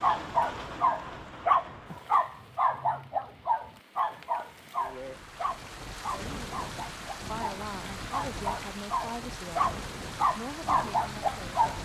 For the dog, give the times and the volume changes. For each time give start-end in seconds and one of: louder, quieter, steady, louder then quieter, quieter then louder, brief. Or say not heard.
0.0-11.8 quieter then louder.